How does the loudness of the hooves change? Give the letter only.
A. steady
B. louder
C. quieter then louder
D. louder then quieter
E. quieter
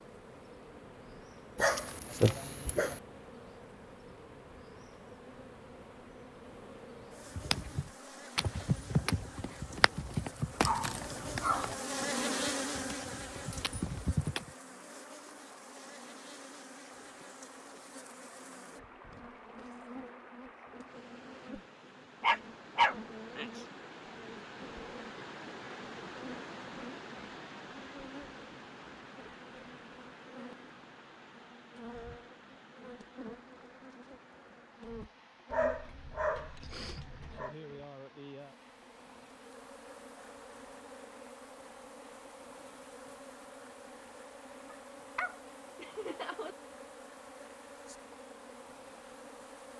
C.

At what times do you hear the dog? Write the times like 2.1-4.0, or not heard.
1.6-3.0, 10.6-11.8, 22.2-23.6, 35.5-37.5, 44.7-46.5.